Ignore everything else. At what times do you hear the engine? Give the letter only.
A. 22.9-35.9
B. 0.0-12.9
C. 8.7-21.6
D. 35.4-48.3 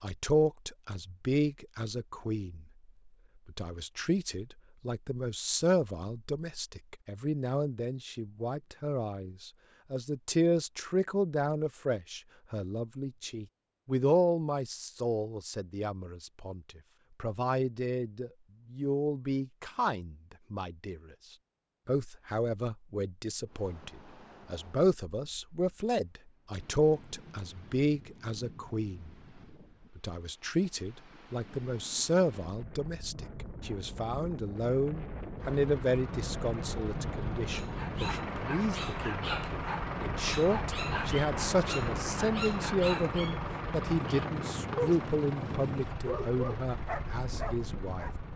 D.